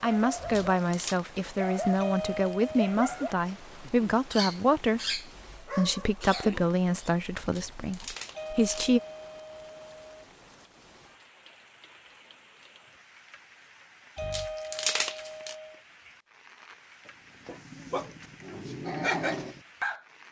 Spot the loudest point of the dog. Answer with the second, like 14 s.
19 s.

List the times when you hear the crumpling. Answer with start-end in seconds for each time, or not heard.
0.3-1.2, 7.3-8.9, 14.2-15.6.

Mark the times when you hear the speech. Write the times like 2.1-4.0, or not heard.
0.0-9.0.